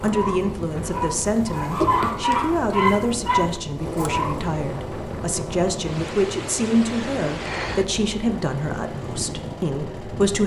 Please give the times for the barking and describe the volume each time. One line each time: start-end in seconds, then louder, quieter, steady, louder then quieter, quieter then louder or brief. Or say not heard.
0.0-4.5 louder.